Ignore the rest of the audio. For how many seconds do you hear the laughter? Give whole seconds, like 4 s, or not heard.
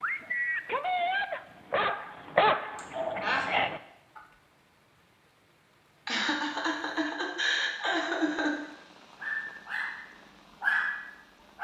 3 s.